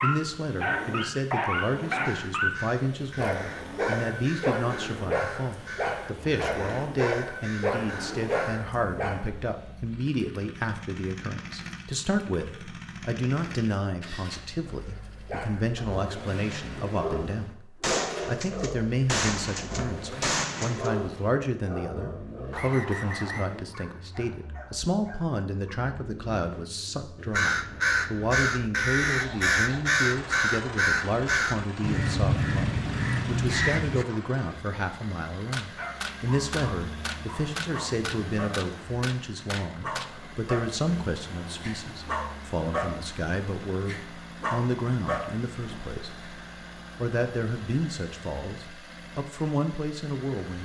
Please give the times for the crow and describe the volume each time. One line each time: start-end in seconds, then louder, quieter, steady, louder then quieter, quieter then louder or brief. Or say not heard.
1.9-8.7 steady
27.3-34.0 steady.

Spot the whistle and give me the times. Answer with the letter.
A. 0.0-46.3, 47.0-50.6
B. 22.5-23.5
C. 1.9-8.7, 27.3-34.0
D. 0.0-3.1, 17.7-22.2
B.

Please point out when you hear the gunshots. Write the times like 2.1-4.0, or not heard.
17.8-20.9, 35.5-40.0.